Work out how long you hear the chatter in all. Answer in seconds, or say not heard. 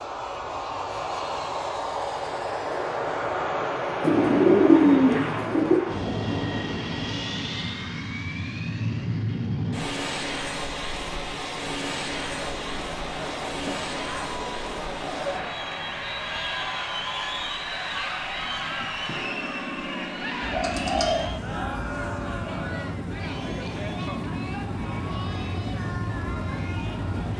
15 s.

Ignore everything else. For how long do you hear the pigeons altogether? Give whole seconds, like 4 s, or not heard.
4 s.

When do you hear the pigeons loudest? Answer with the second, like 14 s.
5 s.